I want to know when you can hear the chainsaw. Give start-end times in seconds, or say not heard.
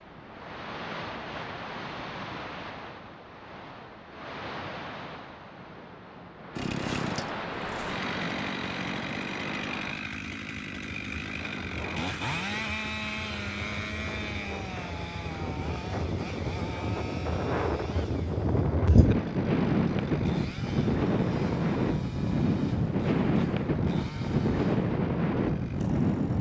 6.5-26.3.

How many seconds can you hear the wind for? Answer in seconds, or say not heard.
26 s.